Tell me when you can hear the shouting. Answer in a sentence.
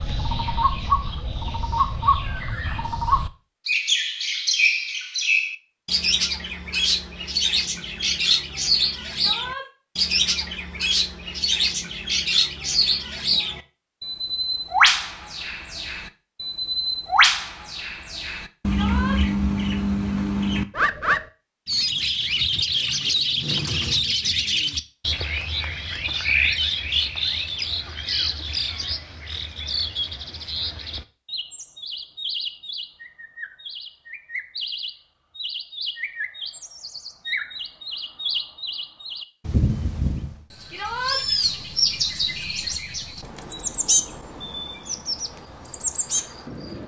The shouting can be heard from 9.2 to 9.7 s, from 18.6 to 19.2 s and from 40.7 to 41.2 s.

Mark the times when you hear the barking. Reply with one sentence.
You can't hear the barking here.